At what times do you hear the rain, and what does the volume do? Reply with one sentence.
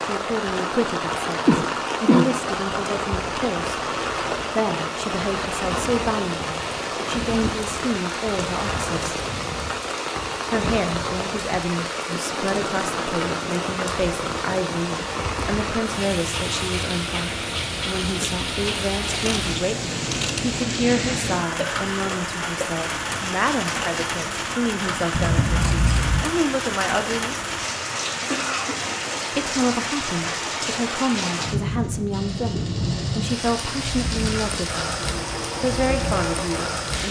The rain can be heard from 0.0 to 37.0 s, at a steady volume.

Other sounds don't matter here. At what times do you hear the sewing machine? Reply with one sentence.
You can hear the sewing machine from 32.1 to 36.8 s.